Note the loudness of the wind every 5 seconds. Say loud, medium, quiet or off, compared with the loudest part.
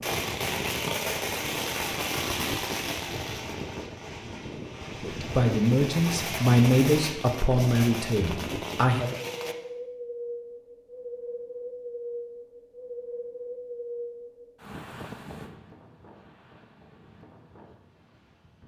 loud, loud, loud, medium.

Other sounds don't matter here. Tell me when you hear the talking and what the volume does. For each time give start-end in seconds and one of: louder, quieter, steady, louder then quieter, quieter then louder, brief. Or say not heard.
5.0-9.1 quieter.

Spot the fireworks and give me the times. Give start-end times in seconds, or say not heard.
0.0-9.6.